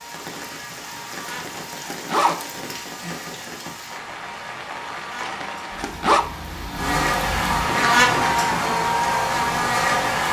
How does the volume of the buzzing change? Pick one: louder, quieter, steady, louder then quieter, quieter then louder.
louder.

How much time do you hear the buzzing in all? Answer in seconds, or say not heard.
10 s.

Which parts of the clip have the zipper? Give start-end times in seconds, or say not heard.
1.3-2.5, 5.2-6.2.